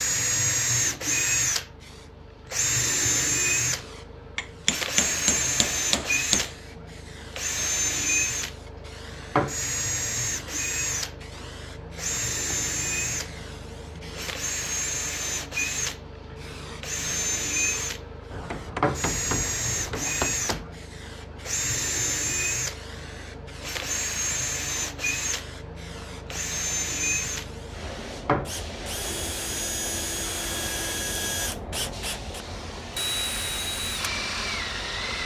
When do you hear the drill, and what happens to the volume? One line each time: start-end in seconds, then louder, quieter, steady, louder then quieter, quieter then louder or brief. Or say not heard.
0.0-35.2 quieter.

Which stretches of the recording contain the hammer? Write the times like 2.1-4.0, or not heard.
4.3-6.5, 18.3-20.8.